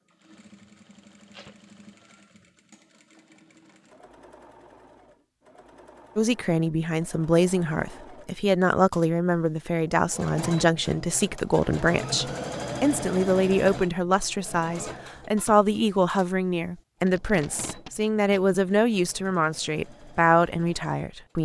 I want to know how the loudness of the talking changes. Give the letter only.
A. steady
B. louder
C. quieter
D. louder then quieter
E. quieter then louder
A.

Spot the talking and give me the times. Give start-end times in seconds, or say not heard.
6.2-21.4.